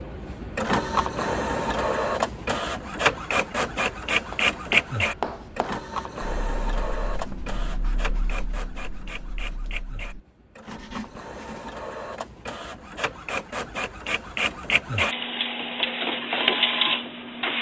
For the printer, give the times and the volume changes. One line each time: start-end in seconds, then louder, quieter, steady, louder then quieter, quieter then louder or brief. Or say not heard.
0.0-17.5 quieter then louder.